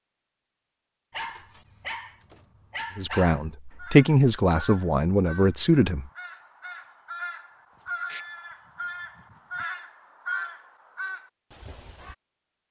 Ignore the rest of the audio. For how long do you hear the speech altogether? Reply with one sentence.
You can hear the speech for 3 seconds altogether.